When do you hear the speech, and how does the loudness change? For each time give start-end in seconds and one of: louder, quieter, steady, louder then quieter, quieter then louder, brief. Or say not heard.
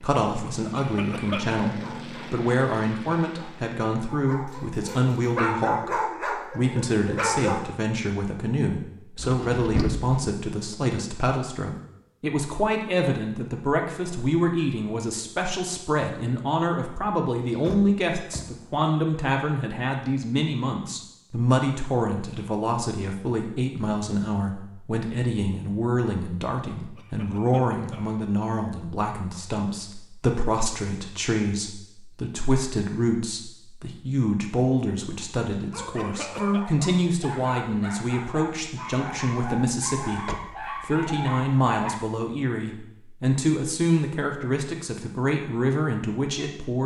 0.0-46.8 steady.